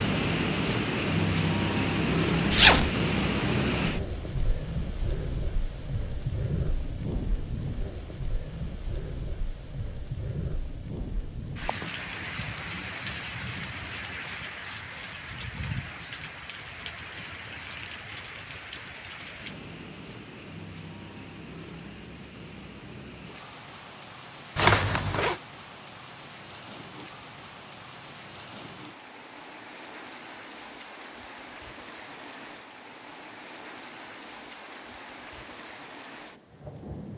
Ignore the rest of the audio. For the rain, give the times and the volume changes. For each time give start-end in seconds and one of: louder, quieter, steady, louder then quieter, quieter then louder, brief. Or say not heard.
0.0-37.1 quieter.